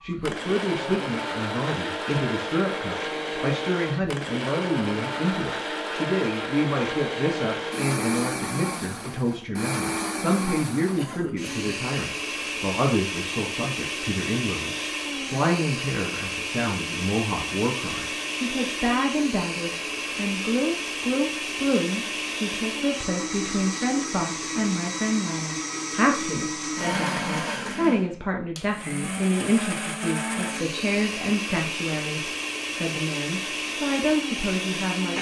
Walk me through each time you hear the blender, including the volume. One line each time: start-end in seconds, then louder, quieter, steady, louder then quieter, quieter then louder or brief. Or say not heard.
0.0-35.1 steady.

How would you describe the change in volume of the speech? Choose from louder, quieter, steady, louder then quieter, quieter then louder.
steady.